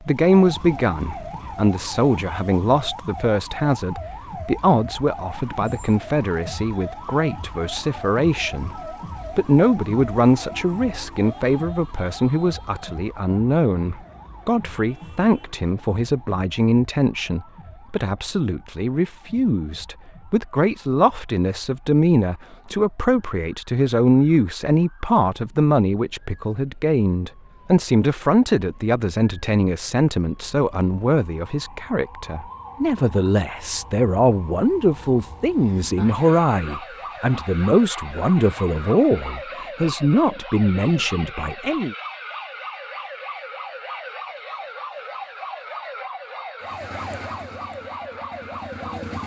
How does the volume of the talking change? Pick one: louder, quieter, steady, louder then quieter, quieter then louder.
steady.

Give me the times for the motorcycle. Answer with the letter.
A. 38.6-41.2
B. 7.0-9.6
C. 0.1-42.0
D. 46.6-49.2
D.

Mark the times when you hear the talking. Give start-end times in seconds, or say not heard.
0.1-42.0.